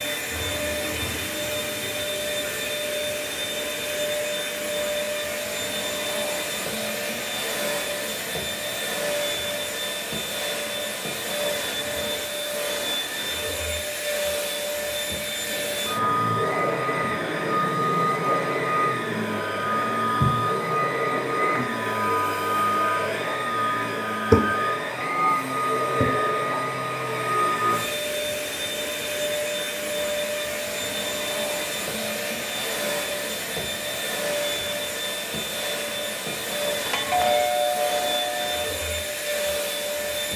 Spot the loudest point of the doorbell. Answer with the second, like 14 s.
37 s.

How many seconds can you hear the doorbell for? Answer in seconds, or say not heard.
2 s.